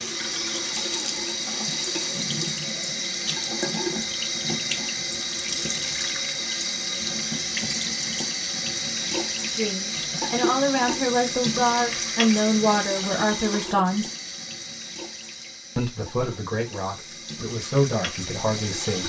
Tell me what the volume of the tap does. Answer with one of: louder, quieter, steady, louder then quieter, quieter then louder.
quieter.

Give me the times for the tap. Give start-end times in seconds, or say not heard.
0.0-19.0.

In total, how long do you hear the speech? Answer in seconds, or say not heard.
8 s.